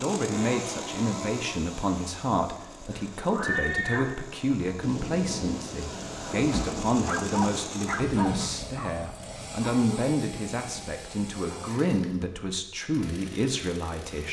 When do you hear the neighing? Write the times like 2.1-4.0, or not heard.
2.9-4.1.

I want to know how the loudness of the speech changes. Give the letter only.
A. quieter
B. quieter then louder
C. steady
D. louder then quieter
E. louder
C.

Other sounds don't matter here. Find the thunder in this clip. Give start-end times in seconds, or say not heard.
4.8-7.7.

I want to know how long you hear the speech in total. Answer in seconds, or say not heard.
14 s.